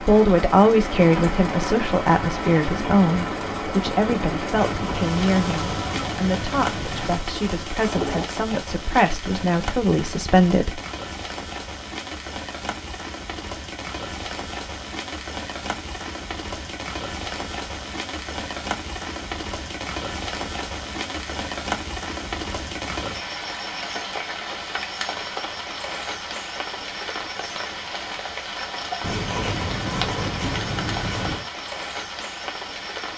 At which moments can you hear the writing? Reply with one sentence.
You can hear the writing from 4.5 to 7.2 s and from 29.0 to 31.4 s.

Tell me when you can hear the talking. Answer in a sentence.
The talking can be heard from 0.1 to 10.8 s.